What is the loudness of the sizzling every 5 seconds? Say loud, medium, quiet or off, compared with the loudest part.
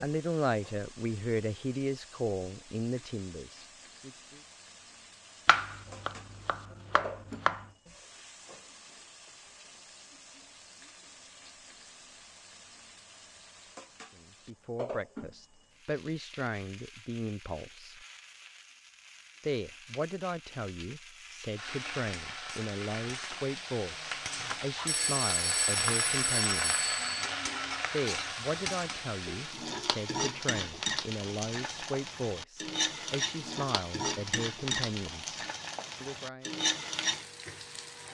quiet, quiet, quiet, quiet, medium, loud, loud, loud.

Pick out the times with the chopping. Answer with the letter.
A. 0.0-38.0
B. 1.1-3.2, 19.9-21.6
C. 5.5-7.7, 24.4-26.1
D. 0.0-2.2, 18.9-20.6
C.